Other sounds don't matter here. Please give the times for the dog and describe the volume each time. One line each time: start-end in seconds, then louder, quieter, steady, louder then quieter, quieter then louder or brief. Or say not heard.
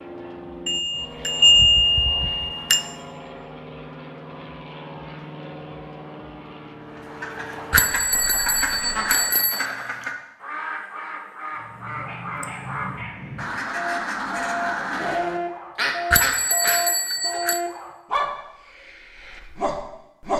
11.6-20.3 louder then quieter.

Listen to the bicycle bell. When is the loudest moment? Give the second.
2 s.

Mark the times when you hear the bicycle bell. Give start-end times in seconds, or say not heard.
0.7-2.8, 7.7-9.7, 16.1-17.6.